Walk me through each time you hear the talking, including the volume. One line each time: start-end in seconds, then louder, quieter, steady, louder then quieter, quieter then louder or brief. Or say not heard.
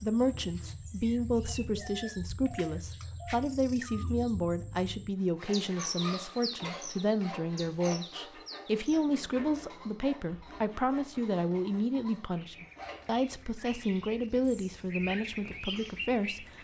0.0-16.5 steady.